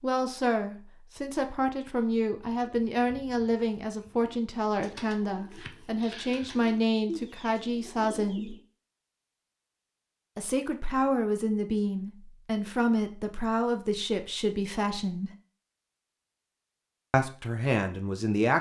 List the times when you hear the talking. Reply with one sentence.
You can hear the talking from 0.0 to 8.6 s, from 10.3 to 15.3 s and from 17.1 to 18.5 s.